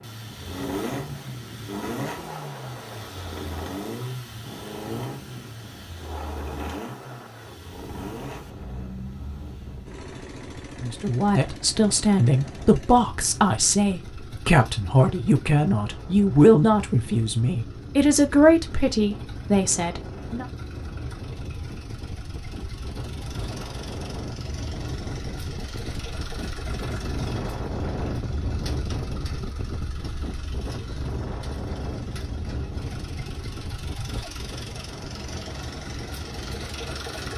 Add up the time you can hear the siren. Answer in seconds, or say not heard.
not heard.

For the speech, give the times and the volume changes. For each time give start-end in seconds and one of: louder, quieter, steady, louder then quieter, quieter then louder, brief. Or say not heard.
10.8-20.4 steady.